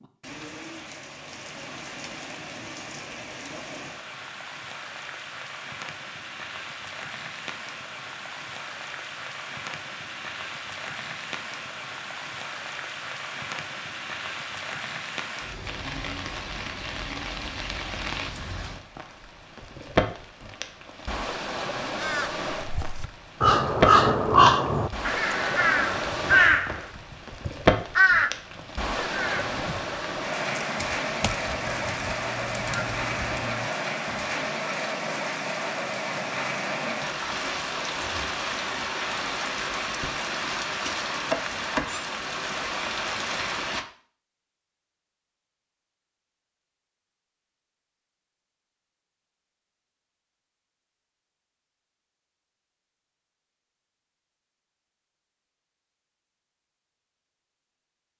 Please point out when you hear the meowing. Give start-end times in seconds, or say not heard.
not heard.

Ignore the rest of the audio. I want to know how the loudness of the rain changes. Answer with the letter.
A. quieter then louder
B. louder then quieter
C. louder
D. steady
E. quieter
C.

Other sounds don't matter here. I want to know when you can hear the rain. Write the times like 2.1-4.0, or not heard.
0.0-43.9.